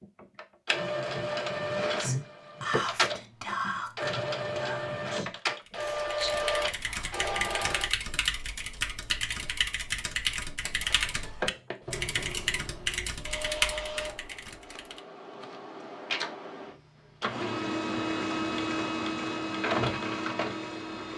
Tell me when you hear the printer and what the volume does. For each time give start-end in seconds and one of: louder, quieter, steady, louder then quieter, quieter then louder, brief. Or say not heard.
0.0-7.9 steady
10.6-21.1 louder.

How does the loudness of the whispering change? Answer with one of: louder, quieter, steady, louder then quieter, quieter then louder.
quieter then louder.